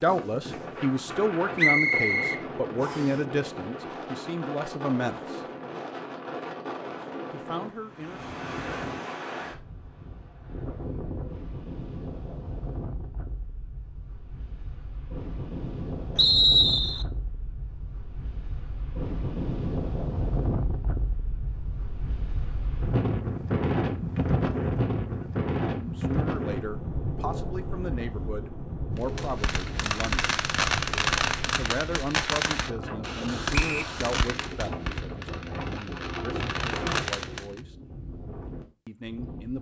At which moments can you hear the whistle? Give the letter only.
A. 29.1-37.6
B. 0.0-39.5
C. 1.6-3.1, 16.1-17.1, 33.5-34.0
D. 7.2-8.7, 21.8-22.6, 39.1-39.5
C.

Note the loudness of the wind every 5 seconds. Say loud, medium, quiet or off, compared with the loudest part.
medium, medium, medium, medium, loud, loud, medium, medium.